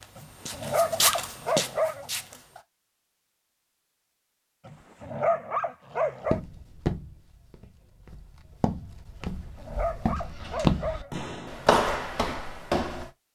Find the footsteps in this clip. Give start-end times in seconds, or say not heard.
0.0-2.6, 6.2-13.1.